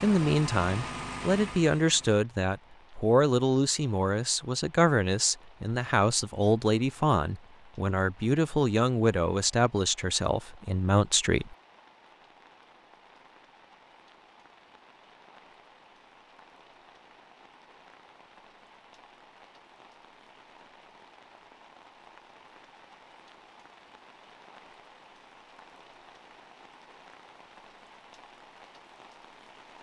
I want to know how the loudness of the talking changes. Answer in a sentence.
The loudness of the talking stays about the same.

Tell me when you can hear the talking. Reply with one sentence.
The talking can be heard from 0.0 to 11.6 s.